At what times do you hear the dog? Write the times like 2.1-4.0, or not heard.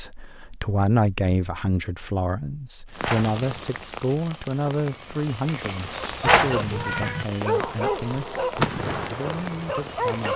6.0-10.3.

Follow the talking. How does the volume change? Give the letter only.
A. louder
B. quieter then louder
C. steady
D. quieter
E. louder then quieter
D.